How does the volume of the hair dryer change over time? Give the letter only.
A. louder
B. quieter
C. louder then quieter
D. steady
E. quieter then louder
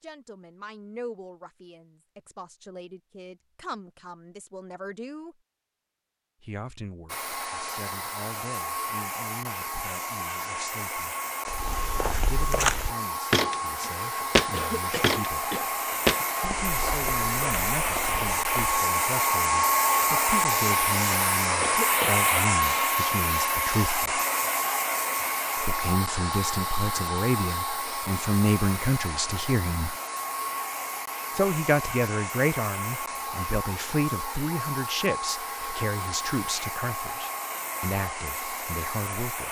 C.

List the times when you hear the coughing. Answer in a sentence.
You can hear the coughing from 14.5 to 15.7 s and from 21.6 to 22.2 s.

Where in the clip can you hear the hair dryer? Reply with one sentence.
The hair dryer can be heard from 7.0 to 39.4 s.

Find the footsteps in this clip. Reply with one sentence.
The footsteps can be heard from 11.4 to 18.8 s.